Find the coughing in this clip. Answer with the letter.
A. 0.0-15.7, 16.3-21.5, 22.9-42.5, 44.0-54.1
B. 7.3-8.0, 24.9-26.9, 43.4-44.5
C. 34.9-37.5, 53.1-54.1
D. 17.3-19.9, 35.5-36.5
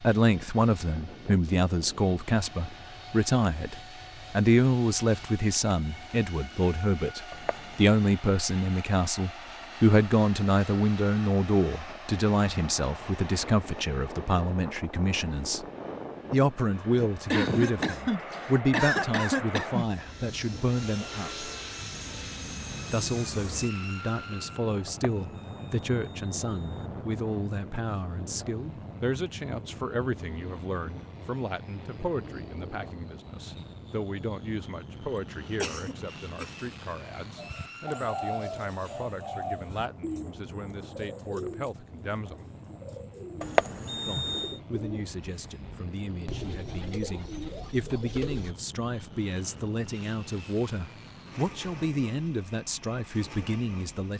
D.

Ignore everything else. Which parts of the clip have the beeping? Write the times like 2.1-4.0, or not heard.
7.3-8.0, 24.9-26.9, 43.4-44.5.